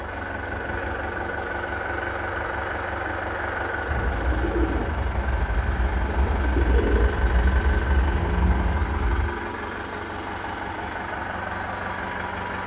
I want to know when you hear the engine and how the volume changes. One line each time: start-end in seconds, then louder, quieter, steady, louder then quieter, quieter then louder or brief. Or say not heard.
0.0-12.6 steady.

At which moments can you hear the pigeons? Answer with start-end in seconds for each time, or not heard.
3.9-9.3.